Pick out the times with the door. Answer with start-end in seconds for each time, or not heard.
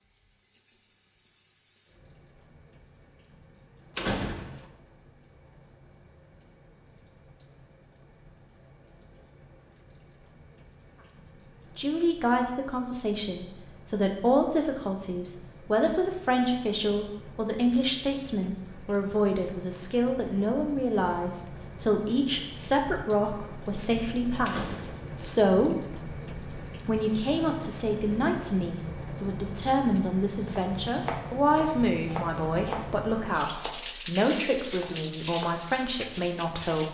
4.0-4.7, 24.4-25.1.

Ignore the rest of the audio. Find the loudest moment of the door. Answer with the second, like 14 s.
4 s.